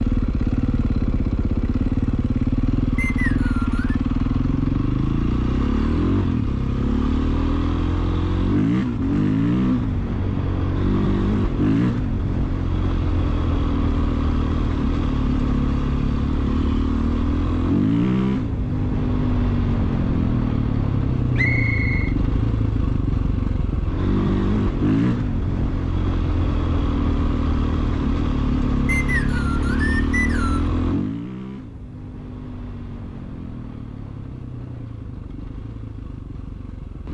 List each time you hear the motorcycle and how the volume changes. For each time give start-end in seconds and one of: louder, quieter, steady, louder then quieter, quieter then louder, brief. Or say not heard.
0.0-37.1 quieter.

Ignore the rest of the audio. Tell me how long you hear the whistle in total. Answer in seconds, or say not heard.
4 s.